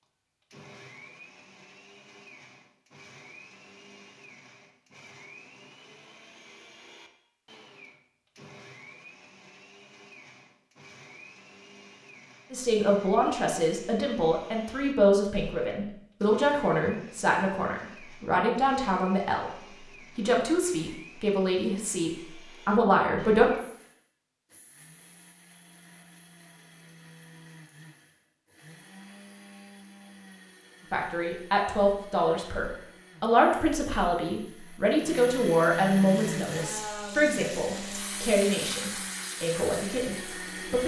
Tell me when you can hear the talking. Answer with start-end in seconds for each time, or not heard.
12.5-23.5, 30.9-40.8.